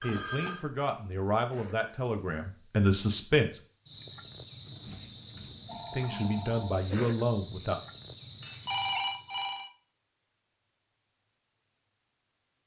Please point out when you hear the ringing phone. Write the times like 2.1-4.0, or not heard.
0.0-0.7, 4.7-6.8, 8.4-9.7.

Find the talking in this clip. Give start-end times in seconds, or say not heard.
0.0-3.6, 5.9-7.8.